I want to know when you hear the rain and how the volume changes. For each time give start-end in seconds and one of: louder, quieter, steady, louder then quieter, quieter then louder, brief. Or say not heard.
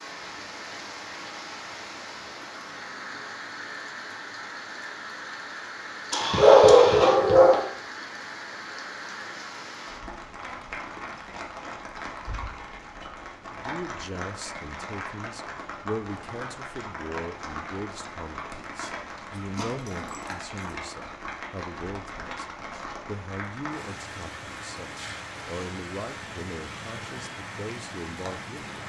0.0-28.8 steady.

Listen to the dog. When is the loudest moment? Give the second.
7 s.